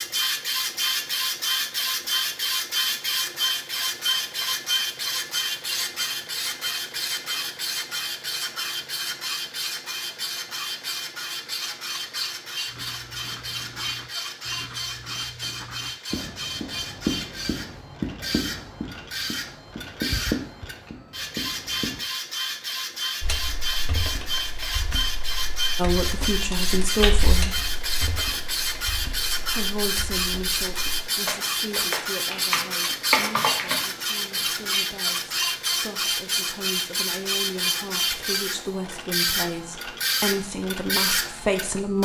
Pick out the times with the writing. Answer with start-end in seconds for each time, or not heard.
12.7-22.1.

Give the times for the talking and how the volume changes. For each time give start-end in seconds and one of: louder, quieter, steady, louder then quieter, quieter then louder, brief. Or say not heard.
25.8-27.6 brief
29.4-42.0 quieter then louder.